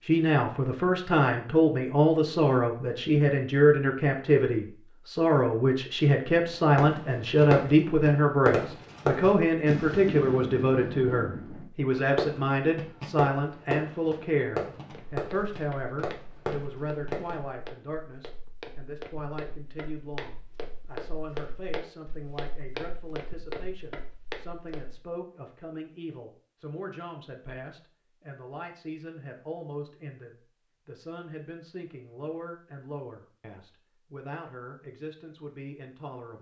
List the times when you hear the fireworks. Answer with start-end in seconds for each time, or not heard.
6.5-17.4.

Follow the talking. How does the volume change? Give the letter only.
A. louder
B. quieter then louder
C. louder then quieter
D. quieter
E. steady
D.